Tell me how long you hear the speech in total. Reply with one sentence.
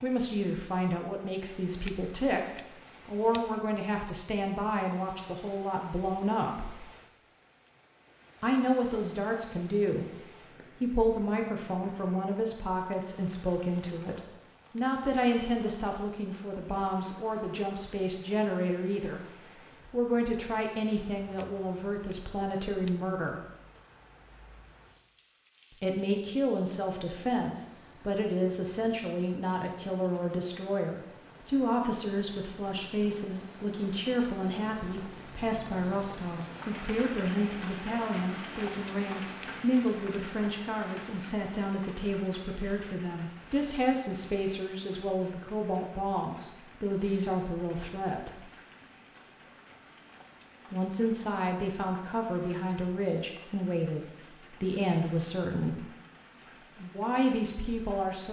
The speech can be heard for 51 seconds in total.